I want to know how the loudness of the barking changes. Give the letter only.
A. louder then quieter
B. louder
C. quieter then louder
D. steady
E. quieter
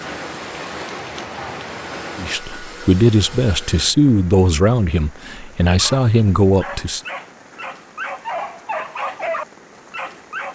B.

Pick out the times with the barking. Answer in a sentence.
You can hear the barking from 5.7 to 10.4 s.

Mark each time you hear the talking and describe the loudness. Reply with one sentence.
You can hear the talking from 2.1 to 7.0 s, getting quieter then louder.